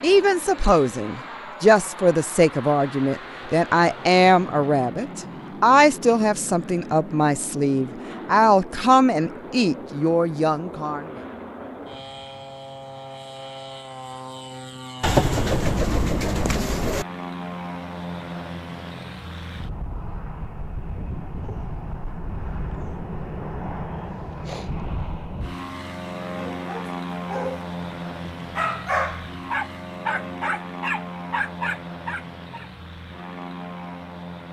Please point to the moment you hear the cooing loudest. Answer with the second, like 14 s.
15 s.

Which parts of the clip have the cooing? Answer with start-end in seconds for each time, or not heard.
15.0-17.1.